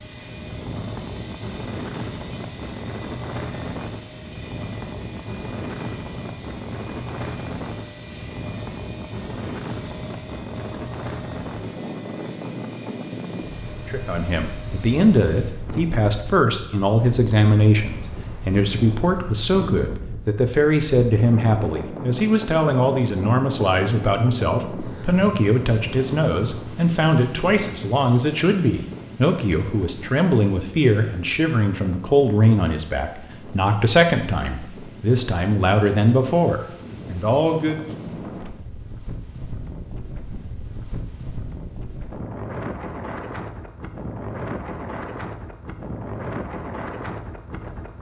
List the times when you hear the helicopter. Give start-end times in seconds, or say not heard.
0.0-15.6.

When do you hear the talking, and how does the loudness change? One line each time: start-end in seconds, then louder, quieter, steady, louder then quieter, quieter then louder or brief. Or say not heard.
13.8-37.8 steady.